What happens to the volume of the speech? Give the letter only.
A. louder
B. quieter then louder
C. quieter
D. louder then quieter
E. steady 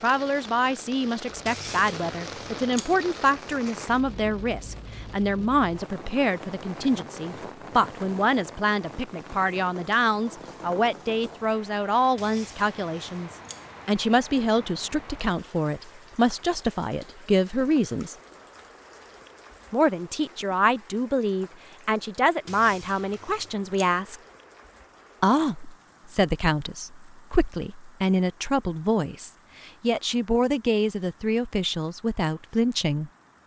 E.